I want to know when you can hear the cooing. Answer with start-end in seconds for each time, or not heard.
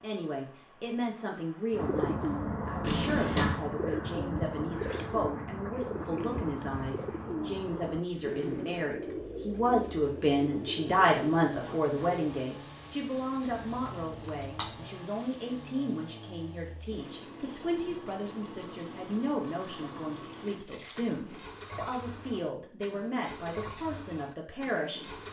1.7-12.2.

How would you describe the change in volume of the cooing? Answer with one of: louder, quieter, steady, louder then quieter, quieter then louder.
quieter.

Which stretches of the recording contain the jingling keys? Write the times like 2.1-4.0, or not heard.
2.8-3.6, 13.4-14.8, 20.6-21.4.